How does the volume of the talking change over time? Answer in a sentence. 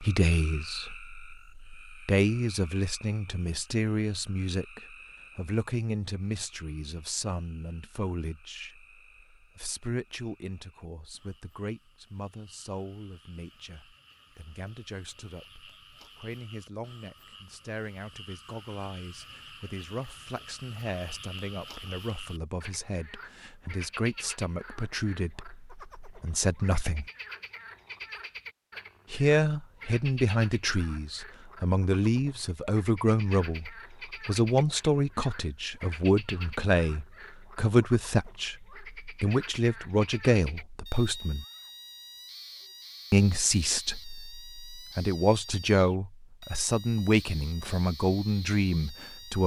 The volume of the talking goes down, then up.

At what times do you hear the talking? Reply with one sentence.
The talking can be heard from 0.0 to 27.1 s, from 29.1 to 41.5 s and from 43.1 to 49.4 s.